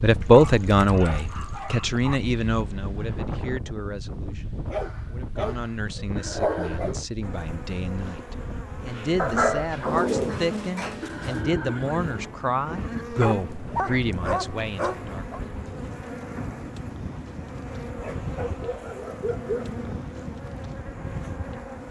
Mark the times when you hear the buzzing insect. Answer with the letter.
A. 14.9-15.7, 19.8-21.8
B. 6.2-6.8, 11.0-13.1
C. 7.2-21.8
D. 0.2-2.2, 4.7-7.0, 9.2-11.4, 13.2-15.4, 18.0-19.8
C.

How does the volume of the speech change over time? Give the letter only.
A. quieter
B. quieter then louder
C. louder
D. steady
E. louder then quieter
B.